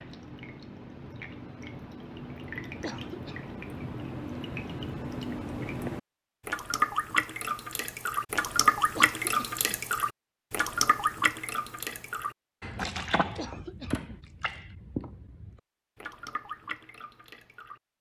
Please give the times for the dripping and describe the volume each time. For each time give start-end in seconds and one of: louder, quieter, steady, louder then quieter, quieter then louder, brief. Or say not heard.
0.0-17.9 louder then quieter.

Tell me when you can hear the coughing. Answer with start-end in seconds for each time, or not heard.
2.8-3.5, 8.9-9.8, 13.3-14.2.